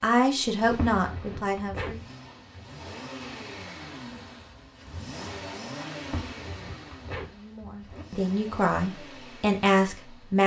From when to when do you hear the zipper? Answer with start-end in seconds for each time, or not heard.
0.7-1.9, 6.0-8.1.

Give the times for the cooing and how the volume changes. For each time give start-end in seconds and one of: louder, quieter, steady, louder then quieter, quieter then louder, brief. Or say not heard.
not heard.